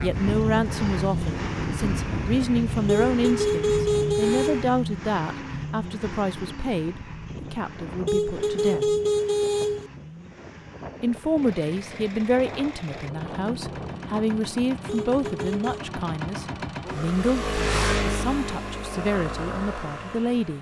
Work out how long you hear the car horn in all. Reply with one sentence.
The car horn can be heard for 5 seconds in total.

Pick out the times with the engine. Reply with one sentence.
You can hear the engine from 0.0 to 20.5 s.